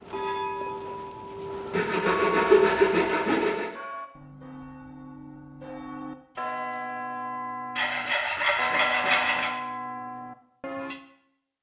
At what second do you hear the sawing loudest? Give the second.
3 s.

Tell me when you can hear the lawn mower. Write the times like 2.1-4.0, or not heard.
not heard.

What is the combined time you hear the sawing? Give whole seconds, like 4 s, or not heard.
4 s.